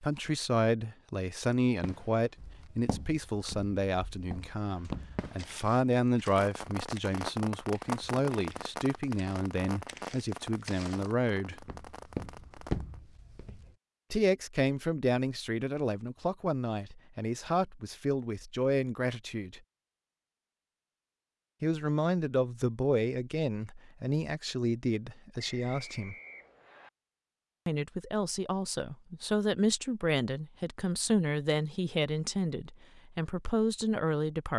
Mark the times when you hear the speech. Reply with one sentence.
The speech can be heard from 0.0 to 11.6 s, from 14.1 to 19.6 s, from 21.6 to 26.1 s and from 27.6 to 34.5 s.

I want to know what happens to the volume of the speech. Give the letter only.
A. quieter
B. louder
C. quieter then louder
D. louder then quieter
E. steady
E.